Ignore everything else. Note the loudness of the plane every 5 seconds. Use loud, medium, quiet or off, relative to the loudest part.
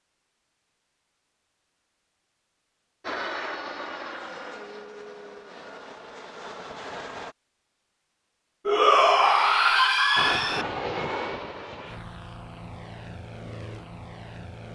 loud, medium, loud.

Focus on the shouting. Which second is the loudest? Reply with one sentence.
The volume of the shouting peaks at 9 seconds.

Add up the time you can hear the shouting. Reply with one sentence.
You can hear the shouting for 2 seconds altogether.